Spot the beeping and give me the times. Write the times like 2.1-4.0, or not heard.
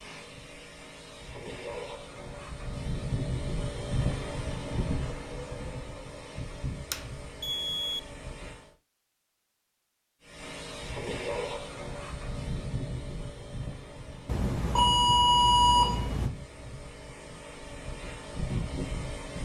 6.9-8.0, 14.2-16.3.